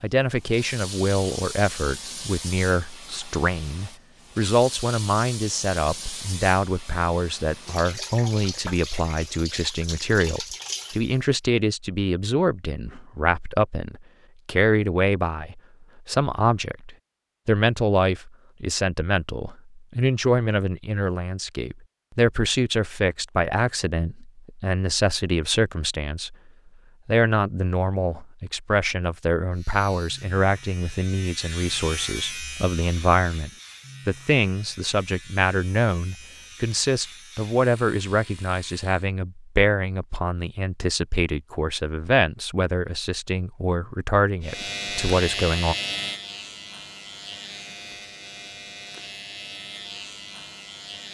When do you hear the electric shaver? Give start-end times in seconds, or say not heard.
29.5-39.1, 44.4-51.0.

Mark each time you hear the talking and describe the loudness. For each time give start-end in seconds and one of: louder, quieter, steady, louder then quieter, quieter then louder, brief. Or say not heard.
0.0-26.4 steady
27.1-45.8 steady.